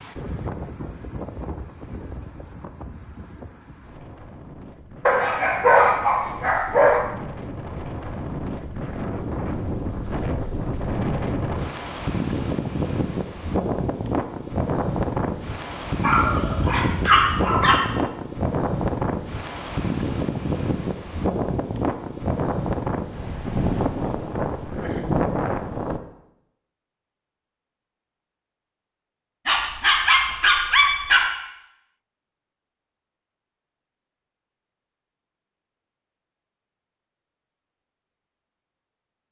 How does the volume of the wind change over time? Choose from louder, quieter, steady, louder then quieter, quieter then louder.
louder.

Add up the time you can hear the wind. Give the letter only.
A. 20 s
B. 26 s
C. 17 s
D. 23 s
B.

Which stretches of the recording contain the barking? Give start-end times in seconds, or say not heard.
5.0-7.0, 16.0-17.8, 29.4-31.2.